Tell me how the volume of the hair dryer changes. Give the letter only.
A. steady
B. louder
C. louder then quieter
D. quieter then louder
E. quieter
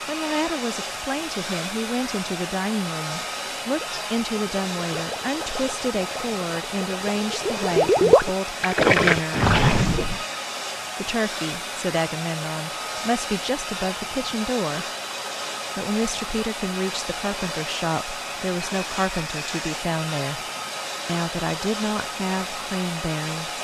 A.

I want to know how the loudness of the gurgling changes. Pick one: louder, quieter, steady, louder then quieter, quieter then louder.
louder.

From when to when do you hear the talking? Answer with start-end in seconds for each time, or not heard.
0.1-9.4, 11.0-14.8, 15.8-20.4, 21.1-23.5.